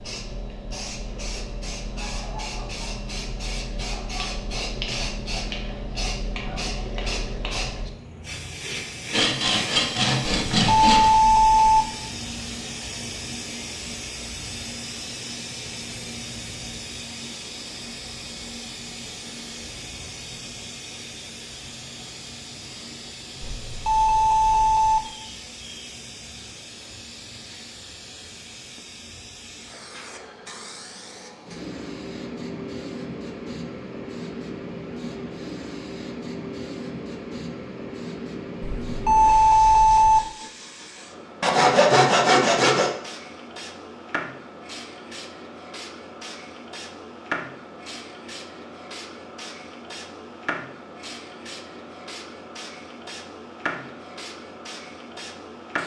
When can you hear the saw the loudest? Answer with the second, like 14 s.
42 s.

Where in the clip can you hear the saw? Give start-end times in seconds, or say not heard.
9.1-11.1, 41.4-42.9.